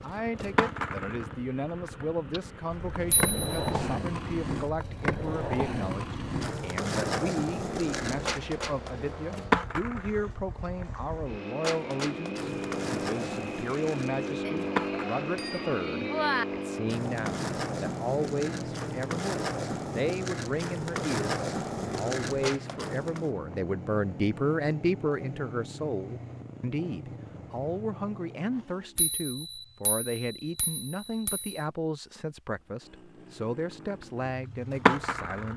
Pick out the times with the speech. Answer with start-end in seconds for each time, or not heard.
0.0-35.5.